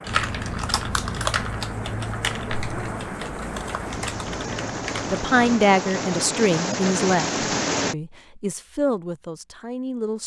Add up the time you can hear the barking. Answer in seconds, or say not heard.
not heard.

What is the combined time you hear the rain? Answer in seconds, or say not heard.
8 s.